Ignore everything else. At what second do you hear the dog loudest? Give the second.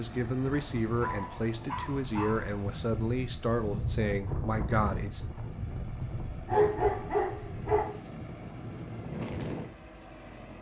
7 s.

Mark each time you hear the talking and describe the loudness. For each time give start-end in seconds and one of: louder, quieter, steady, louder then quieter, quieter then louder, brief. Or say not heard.
0.0-5.2 steady.